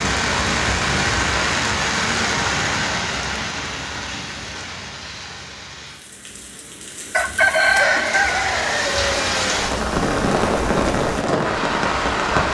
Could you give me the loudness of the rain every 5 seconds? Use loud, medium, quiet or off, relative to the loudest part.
loud, medium, loud.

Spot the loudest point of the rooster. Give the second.
8 s.